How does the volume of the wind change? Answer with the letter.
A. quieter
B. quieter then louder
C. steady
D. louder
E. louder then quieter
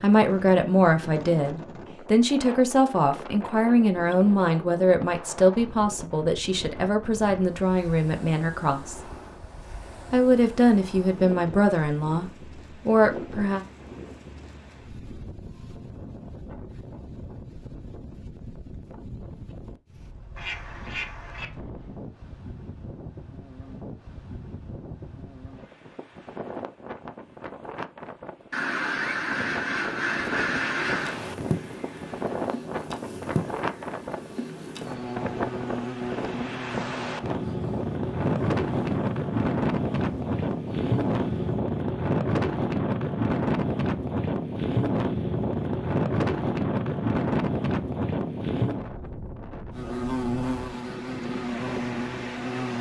D.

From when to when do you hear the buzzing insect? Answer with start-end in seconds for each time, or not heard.
30.9-41.6, 49.7-52.7.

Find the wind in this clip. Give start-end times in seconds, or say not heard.
0.0-52.7.